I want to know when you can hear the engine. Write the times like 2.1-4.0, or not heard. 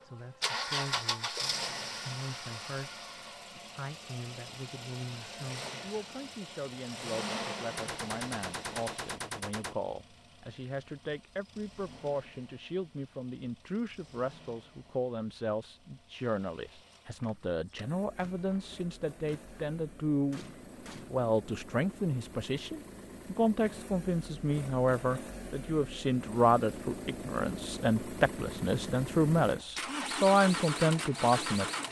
0.0-31.8.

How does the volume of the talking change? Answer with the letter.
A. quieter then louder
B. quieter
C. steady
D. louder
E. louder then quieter
D.